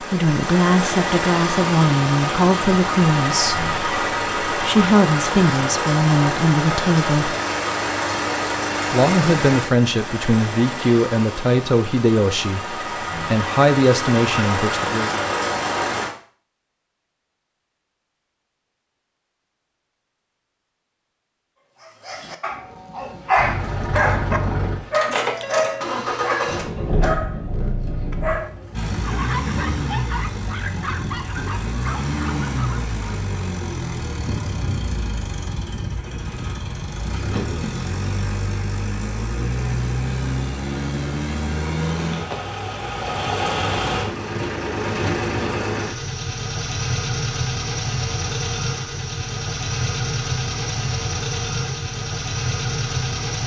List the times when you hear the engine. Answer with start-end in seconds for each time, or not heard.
0.0-16.1, 23.4-53.4.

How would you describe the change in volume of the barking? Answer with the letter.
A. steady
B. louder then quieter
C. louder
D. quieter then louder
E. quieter
E.